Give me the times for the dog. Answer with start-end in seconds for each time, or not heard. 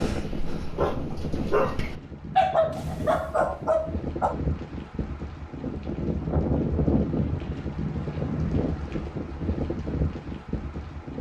0.0-4.3.